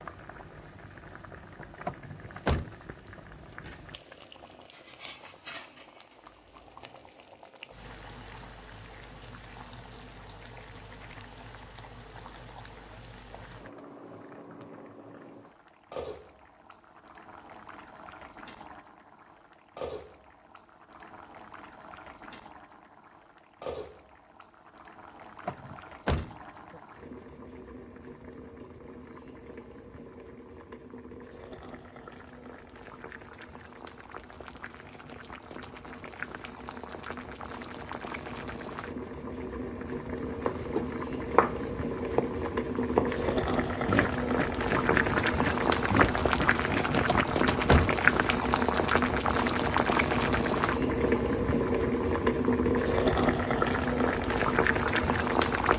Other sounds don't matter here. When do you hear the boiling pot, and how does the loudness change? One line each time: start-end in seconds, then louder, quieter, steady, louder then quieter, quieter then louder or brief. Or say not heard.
0.0-55.7 louder.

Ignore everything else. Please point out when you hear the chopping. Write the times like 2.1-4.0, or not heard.
40.4-47.8.